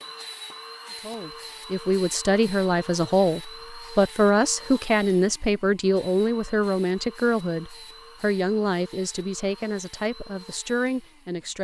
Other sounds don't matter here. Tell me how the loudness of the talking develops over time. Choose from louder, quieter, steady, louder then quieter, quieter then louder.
quieter.